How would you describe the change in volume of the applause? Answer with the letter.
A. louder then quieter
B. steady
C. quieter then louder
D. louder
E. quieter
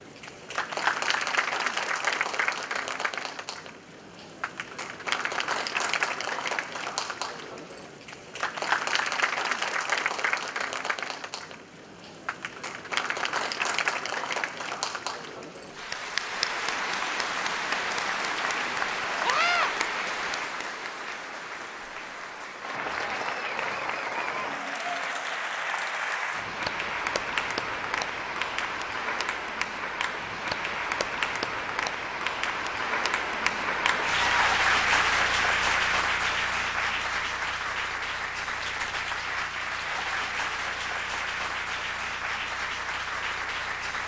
B.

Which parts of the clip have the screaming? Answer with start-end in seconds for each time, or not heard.
19.2-19.7.